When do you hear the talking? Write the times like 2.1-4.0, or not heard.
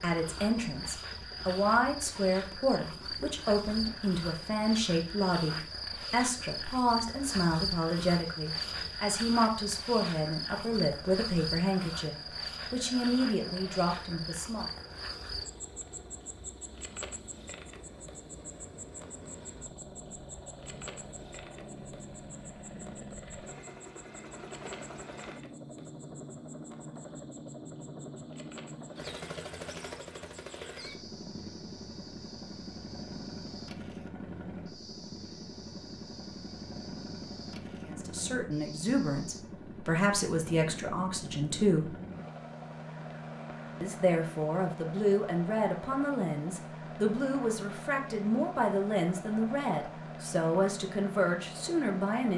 0.0-14.7, 37.9-42.0, 43.8-52.3.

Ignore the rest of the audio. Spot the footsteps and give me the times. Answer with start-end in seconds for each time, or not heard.
not heard.